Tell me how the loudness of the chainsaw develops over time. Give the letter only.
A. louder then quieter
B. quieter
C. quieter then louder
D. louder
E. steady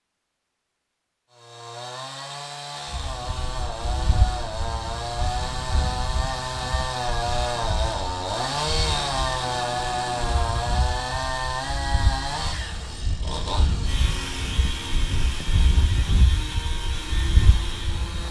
A.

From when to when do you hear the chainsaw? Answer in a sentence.
The chainsaw can be heard from 1.3 to 18.2 s.